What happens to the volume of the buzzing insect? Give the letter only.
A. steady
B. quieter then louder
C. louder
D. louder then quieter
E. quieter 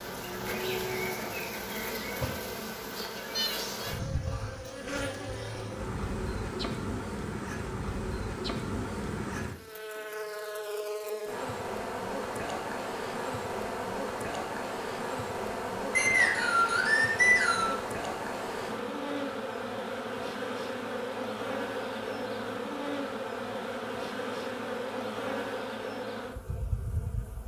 A.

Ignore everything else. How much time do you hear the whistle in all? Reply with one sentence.
You can hear the whistle for 2 seconds altogether.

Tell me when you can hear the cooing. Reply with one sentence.
The cooing can't be heard in this clip.